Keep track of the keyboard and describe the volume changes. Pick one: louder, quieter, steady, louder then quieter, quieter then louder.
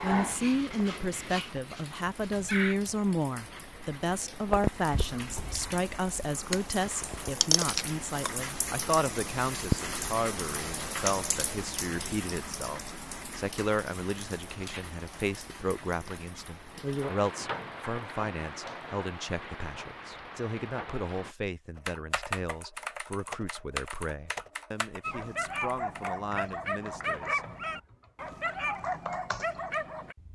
quieter then louder.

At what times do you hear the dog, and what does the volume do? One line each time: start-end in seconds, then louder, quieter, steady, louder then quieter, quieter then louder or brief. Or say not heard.
0.0-2.8 brief
25.0-30.1 steady.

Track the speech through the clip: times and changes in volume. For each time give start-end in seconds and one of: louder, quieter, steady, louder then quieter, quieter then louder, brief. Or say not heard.
0.0-27.4 quieter.